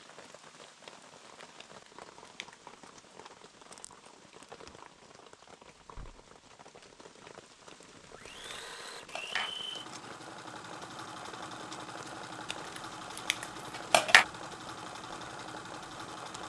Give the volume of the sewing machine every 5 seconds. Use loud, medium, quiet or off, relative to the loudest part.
off, loud, loud, loud.